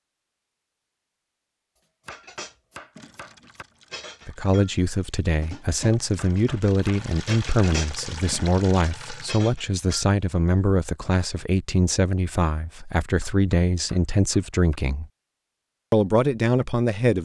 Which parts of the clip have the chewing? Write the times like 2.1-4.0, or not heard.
not heard.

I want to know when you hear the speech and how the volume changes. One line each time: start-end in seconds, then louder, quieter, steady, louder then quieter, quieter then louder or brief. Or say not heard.
4.2-15.1 steady
15.9-17.2 brief.